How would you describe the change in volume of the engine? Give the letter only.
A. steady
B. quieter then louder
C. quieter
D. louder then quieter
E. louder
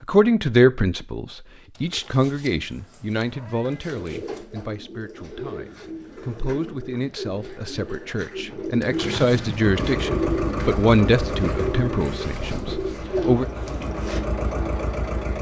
B.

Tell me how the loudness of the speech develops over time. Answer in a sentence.
The loudness of the speech goes down, then up.